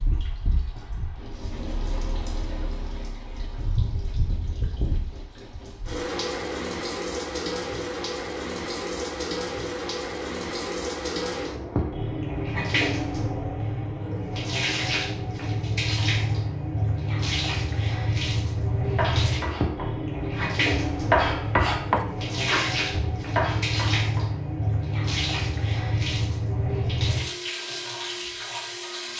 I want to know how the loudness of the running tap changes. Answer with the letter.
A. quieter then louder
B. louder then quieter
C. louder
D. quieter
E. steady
C.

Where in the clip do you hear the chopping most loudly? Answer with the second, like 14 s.
21 s.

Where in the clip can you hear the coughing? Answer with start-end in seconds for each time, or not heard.
not heard.